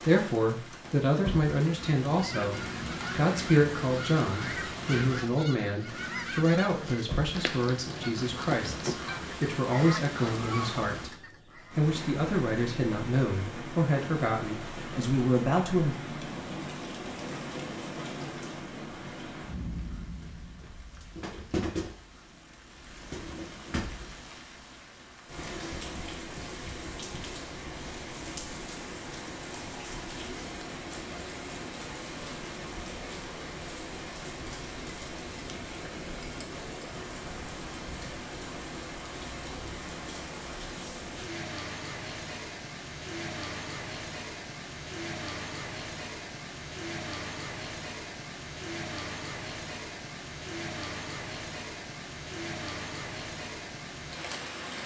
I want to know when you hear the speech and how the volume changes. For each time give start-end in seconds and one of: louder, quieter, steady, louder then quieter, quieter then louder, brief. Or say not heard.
0.0-15.9 steady.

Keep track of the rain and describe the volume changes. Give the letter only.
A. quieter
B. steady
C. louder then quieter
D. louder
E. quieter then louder
B.